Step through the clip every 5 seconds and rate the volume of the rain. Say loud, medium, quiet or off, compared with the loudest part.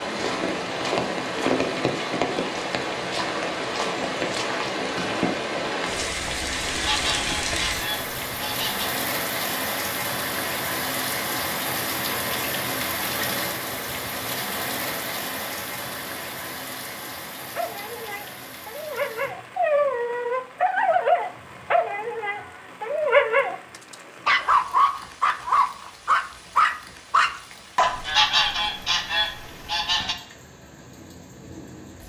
loud, loud, loud, medium, quiet, quiet, quiet.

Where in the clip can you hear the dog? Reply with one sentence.
The dog can be heard from 17.6 to 28.0 s.